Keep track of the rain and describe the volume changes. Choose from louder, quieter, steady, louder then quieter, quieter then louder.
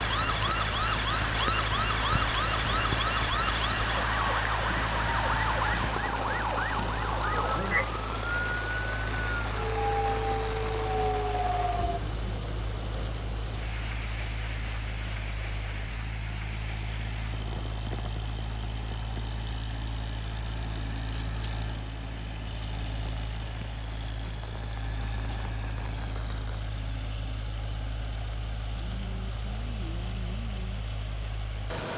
quieter.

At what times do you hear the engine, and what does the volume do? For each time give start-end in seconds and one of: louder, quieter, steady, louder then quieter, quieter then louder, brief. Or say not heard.
0.0-31.9 steady.